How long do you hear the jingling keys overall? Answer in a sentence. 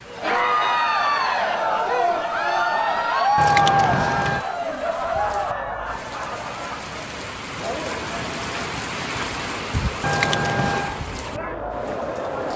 You can hear the jingling keys for 2 seconds altogether.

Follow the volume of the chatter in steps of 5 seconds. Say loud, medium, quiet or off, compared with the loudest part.
loud, medium, medium.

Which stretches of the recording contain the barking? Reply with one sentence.
You can't hear the barking here.